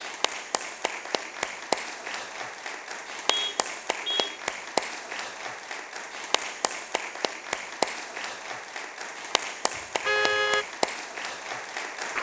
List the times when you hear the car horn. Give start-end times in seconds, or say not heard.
3.2-4.4, 10.1-10.7.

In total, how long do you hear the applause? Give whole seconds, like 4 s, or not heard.
12 s.